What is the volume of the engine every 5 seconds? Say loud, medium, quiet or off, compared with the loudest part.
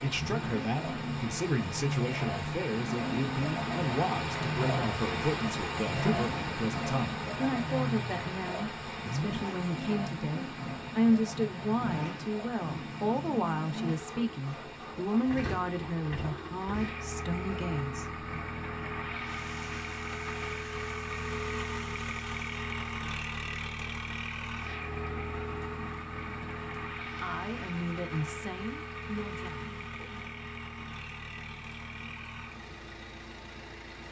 loud, loud, loud, loud, loud, loud, medium.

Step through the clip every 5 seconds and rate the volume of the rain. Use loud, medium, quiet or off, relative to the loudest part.
loud, loud, medium, quiet, quiet, quiet, quiet.